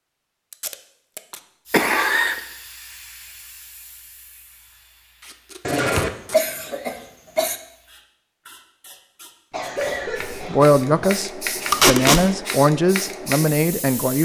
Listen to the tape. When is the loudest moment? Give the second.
12 s.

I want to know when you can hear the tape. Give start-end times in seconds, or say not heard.
0.5-1.4, 5.2-6.5, 11.7-12.2.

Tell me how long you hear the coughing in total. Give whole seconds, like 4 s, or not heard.
4 s.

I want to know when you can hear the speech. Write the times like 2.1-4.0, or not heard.
10.3-14.2.